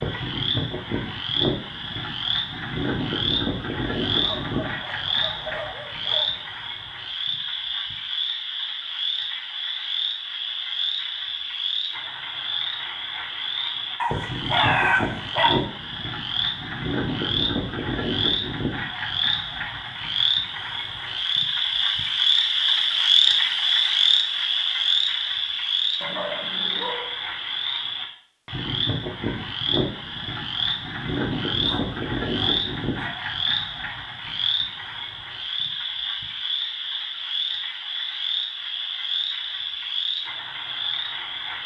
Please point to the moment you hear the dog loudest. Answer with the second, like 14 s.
15 s.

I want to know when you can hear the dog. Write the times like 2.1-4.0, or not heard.
4.0-6.5, 14.0-15.6, 26.0-27.1, 31.6-33.1.